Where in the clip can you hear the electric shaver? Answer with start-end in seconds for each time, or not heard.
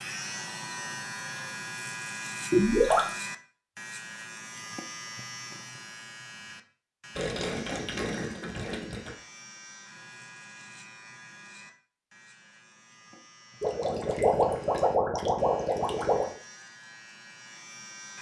0.0-18.1.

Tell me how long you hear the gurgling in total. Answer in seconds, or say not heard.
5 s.